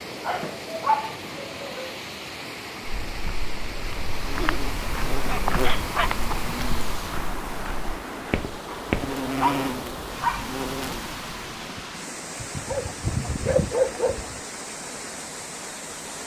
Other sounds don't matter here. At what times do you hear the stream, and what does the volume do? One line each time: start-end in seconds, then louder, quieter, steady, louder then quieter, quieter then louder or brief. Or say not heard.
0.0-16.2 steady.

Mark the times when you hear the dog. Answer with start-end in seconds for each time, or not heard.
0.2-1.9, 4.3-6.3, 8.7-10.4, 12.4-14.4.